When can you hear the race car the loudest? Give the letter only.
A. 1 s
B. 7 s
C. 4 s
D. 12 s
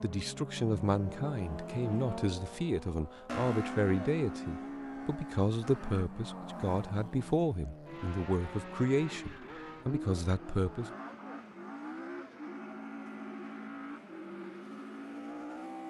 C.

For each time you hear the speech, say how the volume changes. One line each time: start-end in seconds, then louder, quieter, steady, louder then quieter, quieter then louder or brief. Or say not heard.
0.0-10.9 steady.